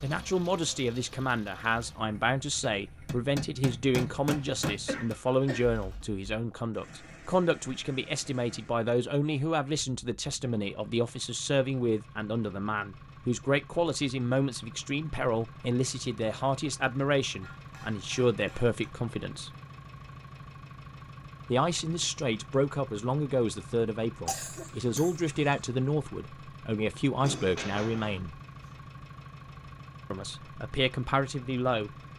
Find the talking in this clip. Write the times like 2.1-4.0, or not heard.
0.0-19.5, 21.5-28.4, 30.1-31.9.